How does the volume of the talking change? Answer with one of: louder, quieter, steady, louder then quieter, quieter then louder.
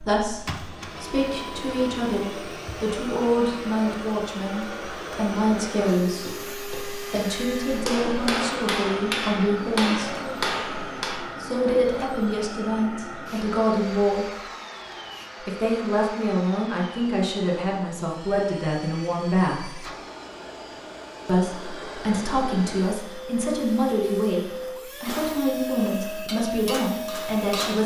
steady.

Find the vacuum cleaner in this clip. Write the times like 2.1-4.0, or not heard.
0.0-27.8.